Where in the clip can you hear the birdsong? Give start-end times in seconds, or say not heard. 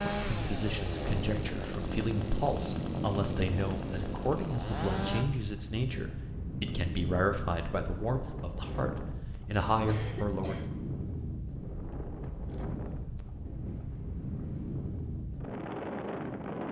not heard.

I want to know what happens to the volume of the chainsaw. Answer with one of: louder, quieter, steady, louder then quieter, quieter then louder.
steady.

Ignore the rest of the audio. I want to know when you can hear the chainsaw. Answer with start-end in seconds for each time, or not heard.
0.0-5.2.